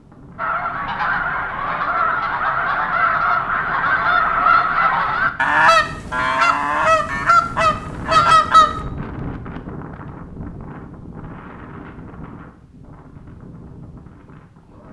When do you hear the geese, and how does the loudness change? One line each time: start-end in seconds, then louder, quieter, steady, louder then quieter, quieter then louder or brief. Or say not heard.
0.3-8.7 louder.